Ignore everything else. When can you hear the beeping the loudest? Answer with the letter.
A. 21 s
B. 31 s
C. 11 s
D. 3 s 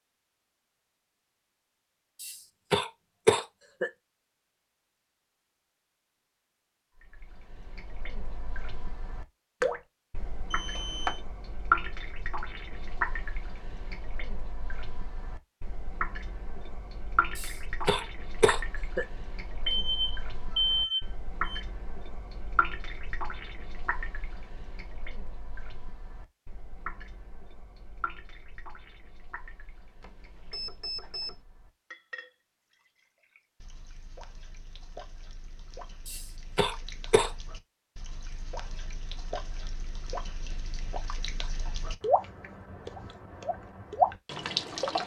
A.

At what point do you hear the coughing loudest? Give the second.
3 s.